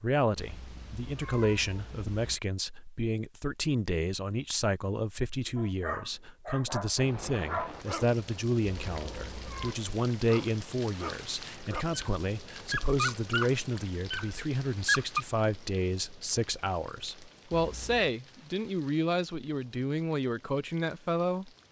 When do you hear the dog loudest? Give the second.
15 s.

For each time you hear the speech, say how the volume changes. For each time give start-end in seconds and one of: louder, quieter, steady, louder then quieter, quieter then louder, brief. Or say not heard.
0.0-21.5 steady.